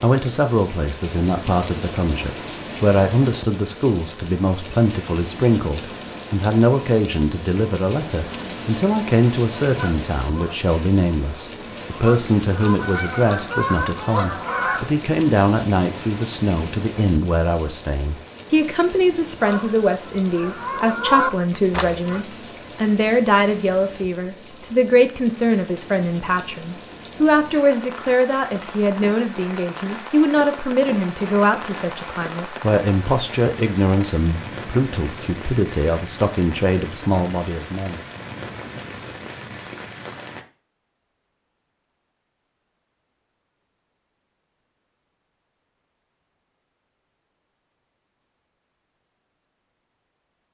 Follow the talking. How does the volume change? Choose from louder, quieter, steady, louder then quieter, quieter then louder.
steady.